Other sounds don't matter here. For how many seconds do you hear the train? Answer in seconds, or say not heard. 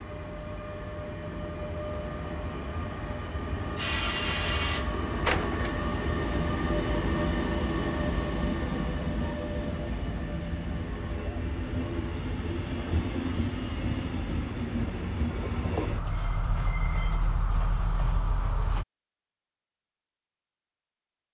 19 s.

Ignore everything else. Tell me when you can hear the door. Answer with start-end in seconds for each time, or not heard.
5.2-5.8.